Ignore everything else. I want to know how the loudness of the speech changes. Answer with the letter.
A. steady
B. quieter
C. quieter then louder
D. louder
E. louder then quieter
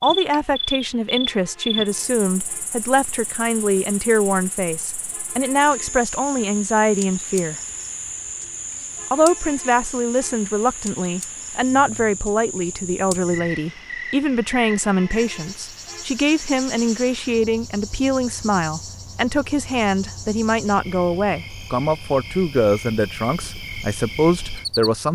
A.